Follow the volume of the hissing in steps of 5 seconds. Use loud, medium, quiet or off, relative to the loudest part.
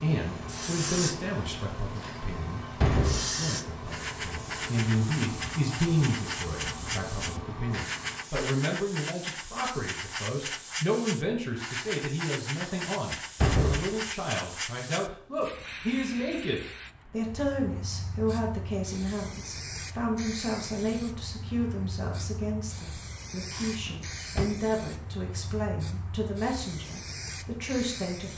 loud, loud, loud, medium, medium, medium.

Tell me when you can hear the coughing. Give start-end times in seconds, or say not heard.
not heard.